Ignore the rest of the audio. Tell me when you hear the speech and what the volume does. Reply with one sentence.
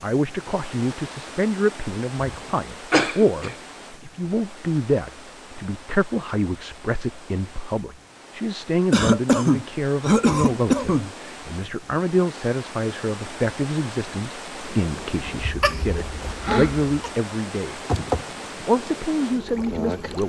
The speech can be heard from 0.0 to 17.8 s, at a steady volume; and briefly from 18.6 to 20.2 s.